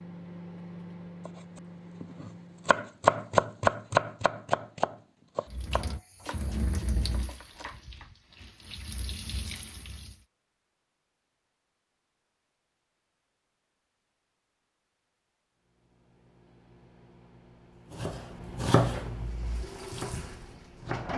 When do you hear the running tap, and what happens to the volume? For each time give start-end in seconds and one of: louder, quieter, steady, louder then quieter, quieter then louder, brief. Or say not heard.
5.5-10.2 quieter then louder
19.1-21.1 brief.